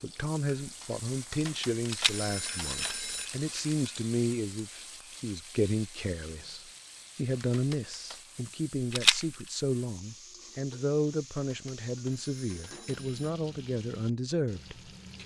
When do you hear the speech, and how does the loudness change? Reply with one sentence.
You can hear the speech from 0.0 to 15.2 s, at a steady volume.